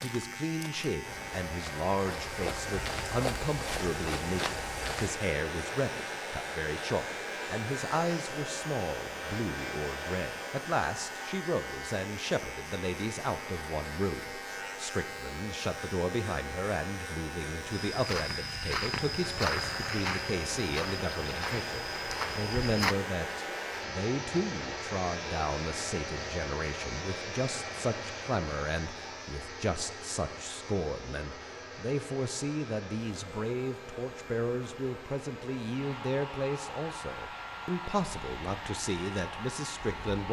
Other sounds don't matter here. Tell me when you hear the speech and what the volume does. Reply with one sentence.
You can hear the speech from 0.0 to 40.2 s, at a steady volume.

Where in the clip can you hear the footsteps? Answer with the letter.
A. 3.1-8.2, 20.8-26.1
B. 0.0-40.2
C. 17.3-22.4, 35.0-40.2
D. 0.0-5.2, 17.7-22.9
D.